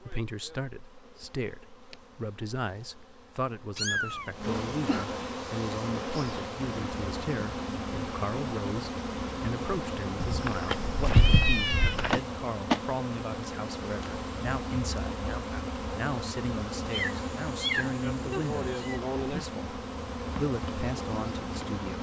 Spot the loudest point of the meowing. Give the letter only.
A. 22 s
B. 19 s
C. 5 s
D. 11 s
D.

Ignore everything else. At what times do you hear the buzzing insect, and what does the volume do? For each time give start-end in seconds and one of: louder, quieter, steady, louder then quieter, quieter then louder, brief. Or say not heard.
0.0-21.9 louder.